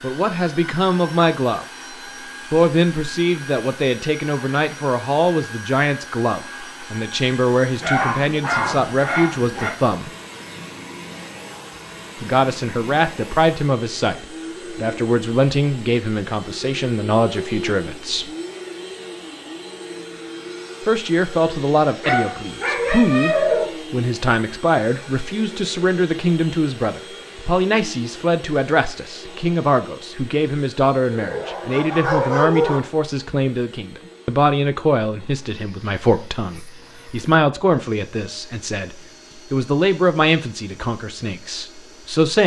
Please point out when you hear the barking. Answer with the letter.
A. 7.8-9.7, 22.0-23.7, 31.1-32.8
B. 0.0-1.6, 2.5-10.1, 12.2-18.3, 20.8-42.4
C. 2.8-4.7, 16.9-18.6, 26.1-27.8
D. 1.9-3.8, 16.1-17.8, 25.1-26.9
A.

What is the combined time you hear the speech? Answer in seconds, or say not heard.
37 s.